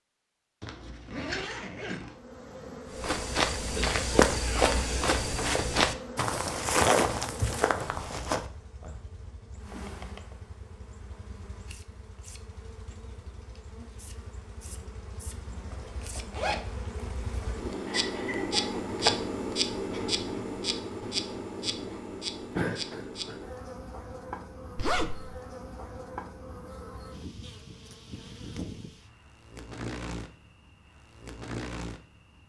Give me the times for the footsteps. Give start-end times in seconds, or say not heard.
2.9-8.4.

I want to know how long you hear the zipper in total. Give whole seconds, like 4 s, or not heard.
4 s.